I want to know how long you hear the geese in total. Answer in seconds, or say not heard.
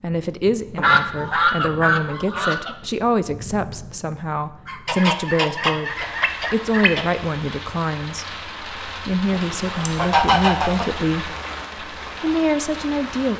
6 s.